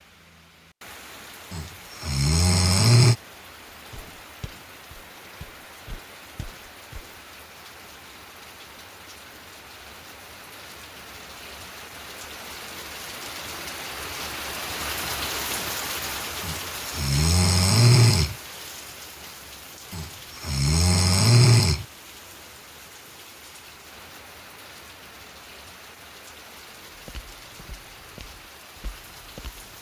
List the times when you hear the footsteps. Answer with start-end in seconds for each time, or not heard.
3.9-7.1, 26.9-29.7.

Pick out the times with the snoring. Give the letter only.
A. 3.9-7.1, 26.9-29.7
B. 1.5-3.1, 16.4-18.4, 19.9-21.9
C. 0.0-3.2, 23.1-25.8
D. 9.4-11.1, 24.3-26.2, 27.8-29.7
B.